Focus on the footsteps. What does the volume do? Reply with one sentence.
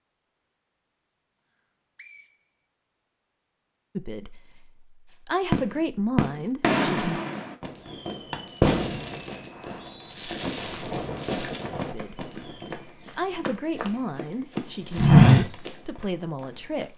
The loudness of the footsteps goes up, then down.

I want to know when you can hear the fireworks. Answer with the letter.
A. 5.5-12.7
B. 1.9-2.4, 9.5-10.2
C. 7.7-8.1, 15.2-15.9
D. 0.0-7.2
A.